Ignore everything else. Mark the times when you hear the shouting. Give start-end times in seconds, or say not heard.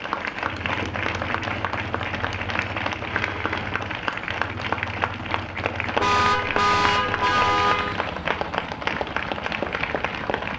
not heard.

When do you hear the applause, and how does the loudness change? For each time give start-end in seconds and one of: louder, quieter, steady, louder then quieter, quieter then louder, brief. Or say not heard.
0.0-10.5 steady.